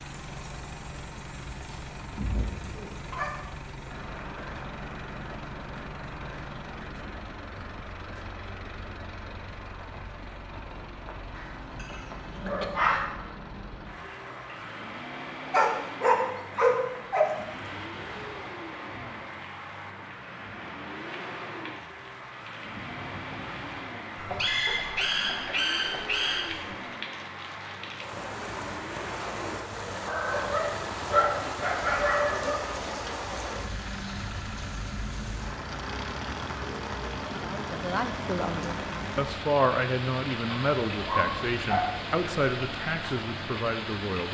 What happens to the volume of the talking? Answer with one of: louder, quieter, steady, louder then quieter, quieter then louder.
louder then quieter.